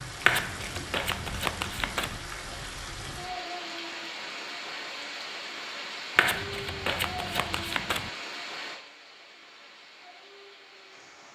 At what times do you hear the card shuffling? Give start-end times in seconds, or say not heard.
0.2-2.2, 6.2-8.1.